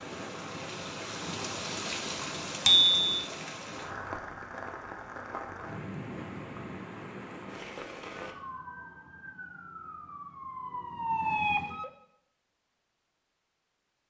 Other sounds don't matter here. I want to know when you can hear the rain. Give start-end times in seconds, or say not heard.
0.0-8.3.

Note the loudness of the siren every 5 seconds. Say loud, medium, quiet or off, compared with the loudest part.
off, quiet, loud.